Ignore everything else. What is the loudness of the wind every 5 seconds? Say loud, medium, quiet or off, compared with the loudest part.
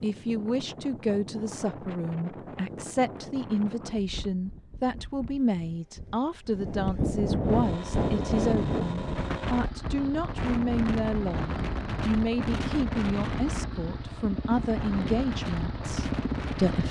medium, loud, loud, medium.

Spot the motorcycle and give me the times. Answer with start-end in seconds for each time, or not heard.
7.4-16.8.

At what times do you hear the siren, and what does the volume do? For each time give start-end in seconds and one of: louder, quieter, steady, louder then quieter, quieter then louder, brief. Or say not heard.
not heard.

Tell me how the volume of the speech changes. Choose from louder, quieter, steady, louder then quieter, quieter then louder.
steady.